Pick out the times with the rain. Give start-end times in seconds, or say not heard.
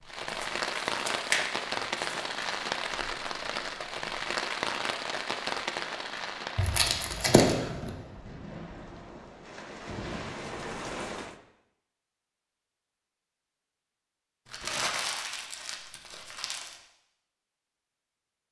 0.0-11.3.